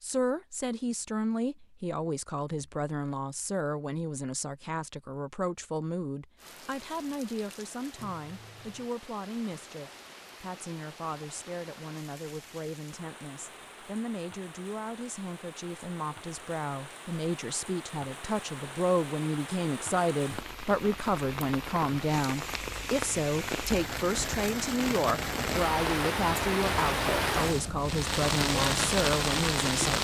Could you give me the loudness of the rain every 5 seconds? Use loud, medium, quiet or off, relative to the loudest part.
off, quiet, quiet, quiet, medium, loud.